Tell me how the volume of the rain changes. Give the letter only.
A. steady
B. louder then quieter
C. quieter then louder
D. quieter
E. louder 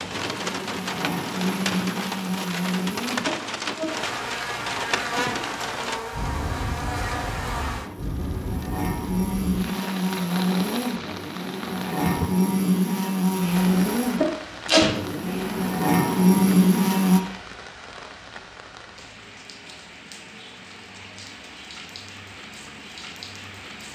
D.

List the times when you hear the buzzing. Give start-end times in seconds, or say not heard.
0.0-17.2.